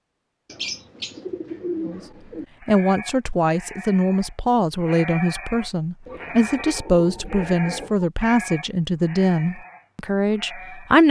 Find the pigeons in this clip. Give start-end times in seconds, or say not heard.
0.5-2.5, 6.0-8.1.